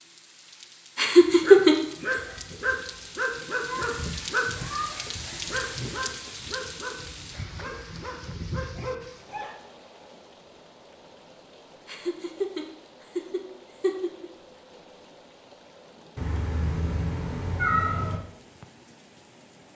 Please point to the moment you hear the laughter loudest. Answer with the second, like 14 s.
2 s.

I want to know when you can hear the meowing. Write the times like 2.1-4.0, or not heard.
3.8-5.0, 16.1-18.2.